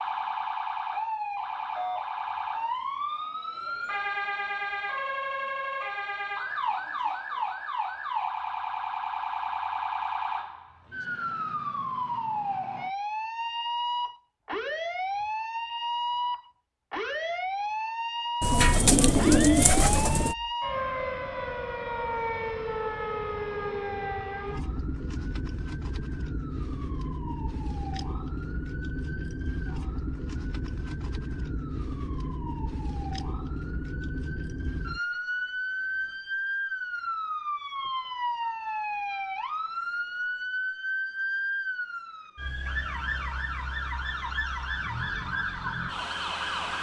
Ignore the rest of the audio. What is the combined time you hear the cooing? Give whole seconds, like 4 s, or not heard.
2 s.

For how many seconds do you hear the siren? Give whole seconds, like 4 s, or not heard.
47 s.